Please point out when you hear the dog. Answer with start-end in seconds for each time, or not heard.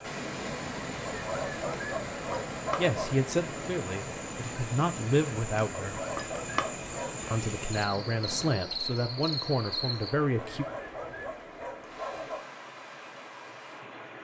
1.1-3.0, 5.8-7.2, 10.3-12.4.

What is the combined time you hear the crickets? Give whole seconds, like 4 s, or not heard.
10 s.